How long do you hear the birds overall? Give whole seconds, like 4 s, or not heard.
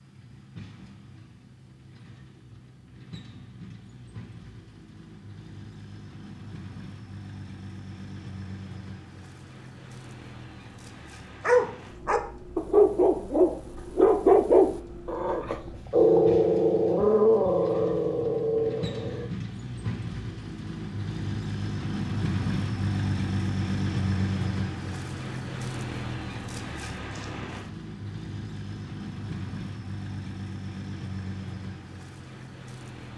not heard.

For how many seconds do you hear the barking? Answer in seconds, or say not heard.
8 s.